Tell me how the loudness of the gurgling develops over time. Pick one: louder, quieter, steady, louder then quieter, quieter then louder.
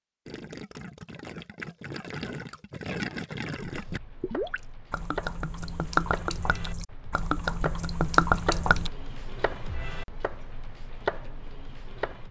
louder.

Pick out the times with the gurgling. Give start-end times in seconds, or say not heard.
0.2-8.9.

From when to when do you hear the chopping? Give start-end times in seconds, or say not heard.
3.6-12.2.